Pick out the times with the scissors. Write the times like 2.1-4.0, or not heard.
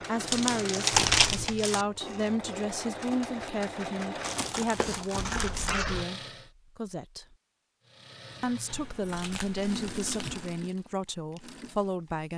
0.9-1.6, 5.2-6.0, 8.7-10.5.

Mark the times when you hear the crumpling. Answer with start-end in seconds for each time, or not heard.
0.2-1.9, 4.2-5.8, 9.1-10.3.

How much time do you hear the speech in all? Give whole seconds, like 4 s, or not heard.
11 s.